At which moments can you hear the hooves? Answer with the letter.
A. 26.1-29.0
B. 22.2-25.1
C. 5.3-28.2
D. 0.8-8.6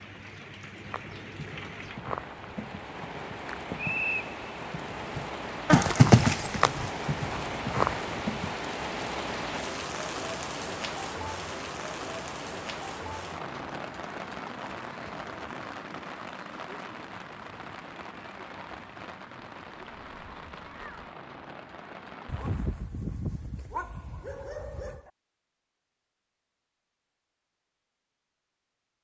D.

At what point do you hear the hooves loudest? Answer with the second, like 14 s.
6 s.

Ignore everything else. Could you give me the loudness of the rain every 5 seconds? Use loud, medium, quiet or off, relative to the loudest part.
medium, loud, loud, medium, medium, off.